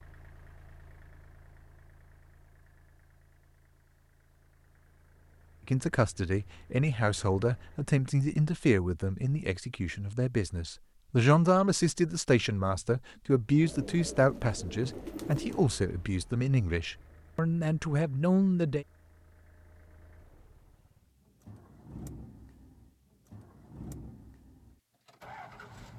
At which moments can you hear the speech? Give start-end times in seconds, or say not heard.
5.7-18.9.